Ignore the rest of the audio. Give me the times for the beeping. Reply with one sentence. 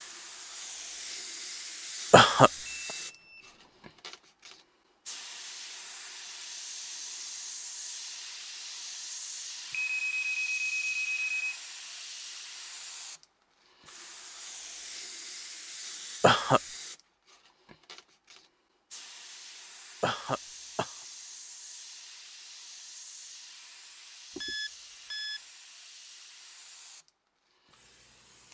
The beeping can be heard from 2.6 to 4.0 s, from 9.7 to 11.6 s and from 24.4 to 25.4 s.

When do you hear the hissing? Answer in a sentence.
The hissing can be heard from 0.0 to 28.4 s.